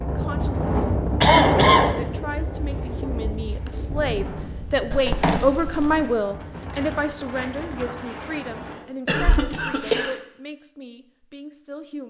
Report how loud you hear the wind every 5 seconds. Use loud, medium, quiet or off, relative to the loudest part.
loud, medium, off.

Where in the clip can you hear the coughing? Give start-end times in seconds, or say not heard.
1.2-1.9, 4.9-6.0, 9.1-10.2.